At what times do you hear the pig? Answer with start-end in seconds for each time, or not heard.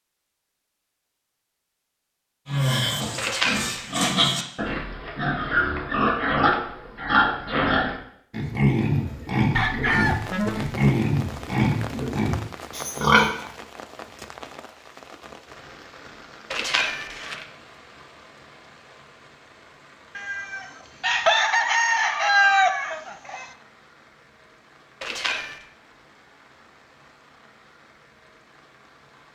2.5-13.4.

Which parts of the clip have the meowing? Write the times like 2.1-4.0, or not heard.
3.1-4.0, 16.5-17.4, 25.0-25.6.